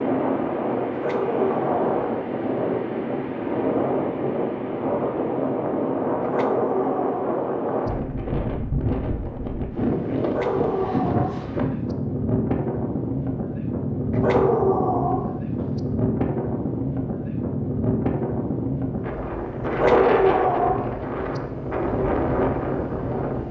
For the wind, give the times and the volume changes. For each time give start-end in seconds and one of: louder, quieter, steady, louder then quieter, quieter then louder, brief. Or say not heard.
0.0-23.4 steady.